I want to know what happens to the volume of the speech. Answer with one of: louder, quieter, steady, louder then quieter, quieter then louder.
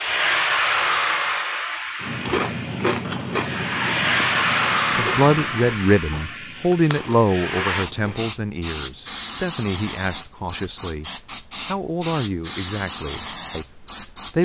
quieter.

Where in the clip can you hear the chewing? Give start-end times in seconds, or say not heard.
2.0-8.3.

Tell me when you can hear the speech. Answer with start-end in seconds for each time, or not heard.
5.0-14.4.